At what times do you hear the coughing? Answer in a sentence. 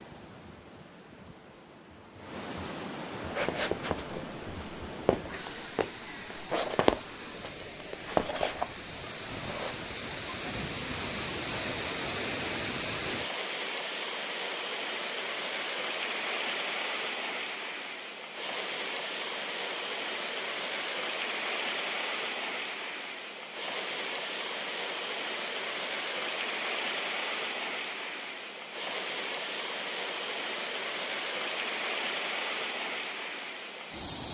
The coughing can't be heard in this clip.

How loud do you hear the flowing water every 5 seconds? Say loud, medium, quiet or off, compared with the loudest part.
medium, medium, loud, loud, loud, loud, loud.